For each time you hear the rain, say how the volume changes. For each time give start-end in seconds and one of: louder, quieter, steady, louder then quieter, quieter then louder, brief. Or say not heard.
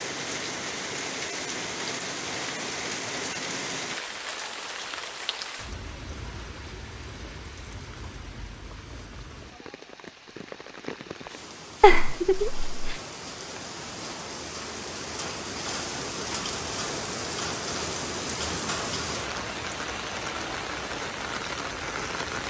0.0-22.4 quieter then louder.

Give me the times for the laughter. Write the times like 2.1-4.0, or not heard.
11.8-13.0.